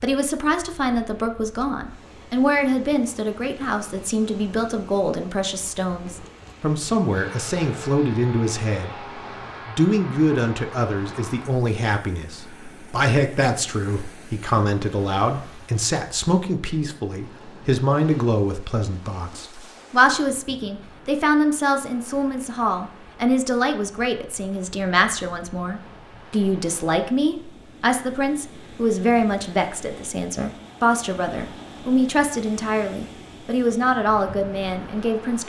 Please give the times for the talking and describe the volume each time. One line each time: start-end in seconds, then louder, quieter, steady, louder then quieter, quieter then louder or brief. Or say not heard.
0.0-35.4 steady.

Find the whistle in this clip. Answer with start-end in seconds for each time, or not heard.
not heard.